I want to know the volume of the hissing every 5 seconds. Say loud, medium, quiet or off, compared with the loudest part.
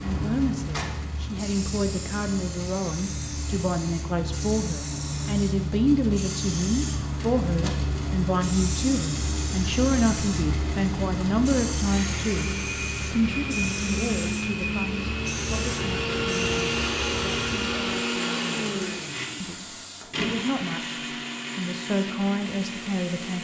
loud, loud, loud, medium, quiet.